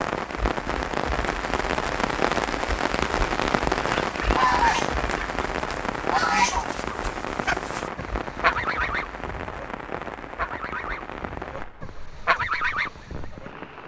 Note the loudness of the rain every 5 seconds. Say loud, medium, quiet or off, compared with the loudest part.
loud, medium, quiet.